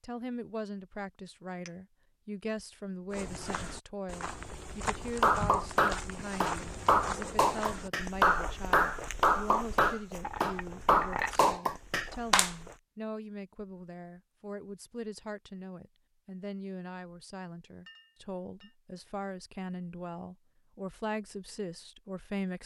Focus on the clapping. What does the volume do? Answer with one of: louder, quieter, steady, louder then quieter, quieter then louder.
steady.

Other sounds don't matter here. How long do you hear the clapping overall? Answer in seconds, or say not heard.
7 s.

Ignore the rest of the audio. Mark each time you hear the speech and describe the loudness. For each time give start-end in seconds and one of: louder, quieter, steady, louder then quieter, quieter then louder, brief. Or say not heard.
0.0-22.6 steady.